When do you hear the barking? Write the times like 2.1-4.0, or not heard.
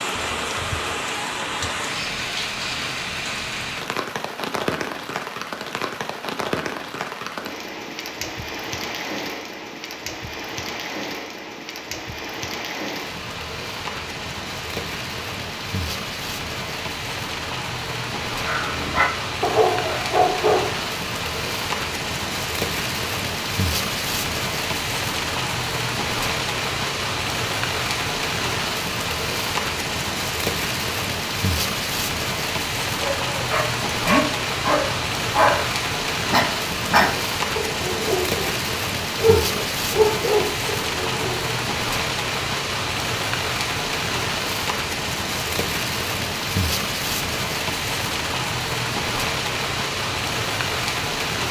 18.4-20.9, 33.0-35.7, 36.3-41.6.